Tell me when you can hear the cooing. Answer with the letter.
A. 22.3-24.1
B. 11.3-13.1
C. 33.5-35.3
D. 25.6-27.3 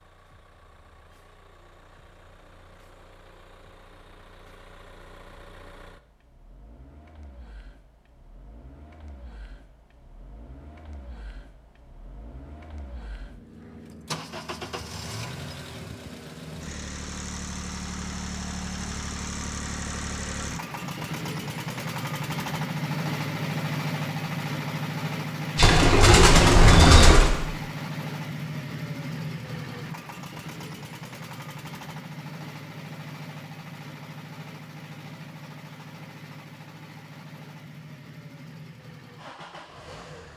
D.